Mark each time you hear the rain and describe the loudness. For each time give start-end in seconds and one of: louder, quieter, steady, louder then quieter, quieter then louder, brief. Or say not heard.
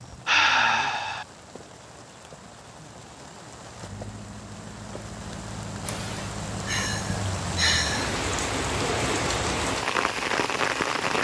0.0-11.1 louder.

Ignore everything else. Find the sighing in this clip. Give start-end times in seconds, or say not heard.
0.2-1.2, 5.8-8.2.